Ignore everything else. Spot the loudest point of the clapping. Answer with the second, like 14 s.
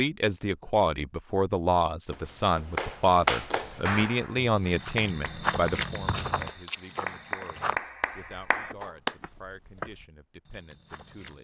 3 s.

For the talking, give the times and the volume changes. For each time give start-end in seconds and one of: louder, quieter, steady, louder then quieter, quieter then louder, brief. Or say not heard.
0.0-11.4 quieter.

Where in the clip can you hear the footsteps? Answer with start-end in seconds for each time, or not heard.
2.0-11.4.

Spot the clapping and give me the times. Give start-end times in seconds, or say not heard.
2.8-9.2.